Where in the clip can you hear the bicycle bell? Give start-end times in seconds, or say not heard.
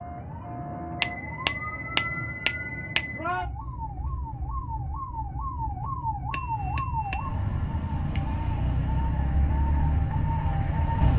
1.0-3.2, 6.3-7.3.